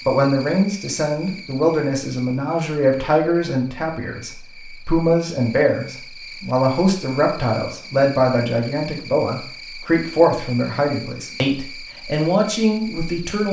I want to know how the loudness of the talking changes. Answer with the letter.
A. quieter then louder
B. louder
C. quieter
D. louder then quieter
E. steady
E.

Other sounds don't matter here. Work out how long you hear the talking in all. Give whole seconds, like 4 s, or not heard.
13 s.